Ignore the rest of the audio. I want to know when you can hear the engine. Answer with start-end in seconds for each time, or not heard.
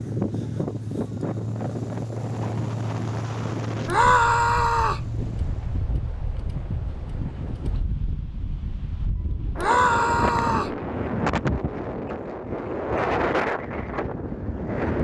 0.0-5.8.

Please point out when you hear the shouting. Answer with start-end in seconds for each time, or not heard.
3.9-5.0, 9.6-10.8.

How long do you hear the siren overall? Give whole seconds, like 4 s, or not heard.
not heard.